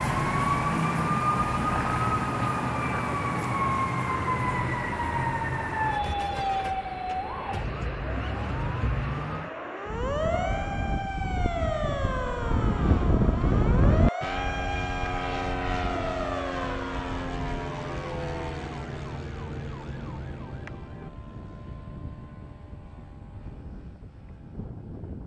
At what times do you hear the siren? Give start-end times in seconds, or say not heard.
0.0-21.1.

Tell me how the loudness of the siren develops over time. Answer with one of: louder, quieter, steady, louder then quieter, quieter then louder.
quieter.